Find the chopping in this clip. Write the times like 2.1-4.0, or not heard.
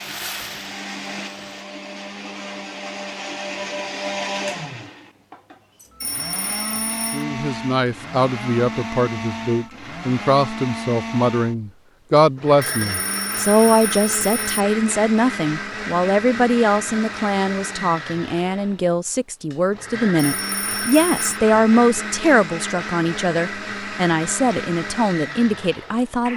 not heard.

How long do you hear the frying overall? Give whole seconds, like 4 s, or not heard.
2 s.